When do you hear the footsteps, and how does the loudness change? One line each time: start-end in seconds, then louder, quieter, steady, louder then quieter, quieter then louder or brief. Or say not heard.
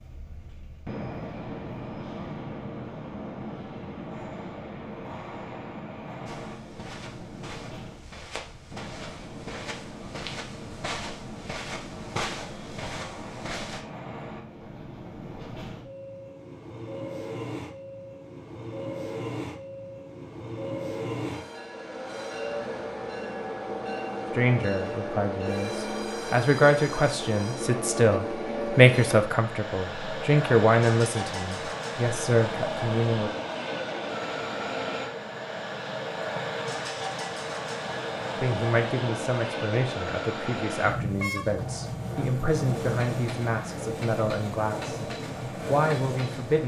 6.2-13.8 louder.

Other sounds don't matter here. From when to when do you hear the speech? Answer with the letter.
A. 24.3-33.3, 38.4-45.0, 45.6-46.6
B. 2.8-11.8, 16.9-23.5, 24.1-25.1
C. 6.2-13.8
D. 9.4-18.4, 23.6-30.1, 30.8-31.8
A.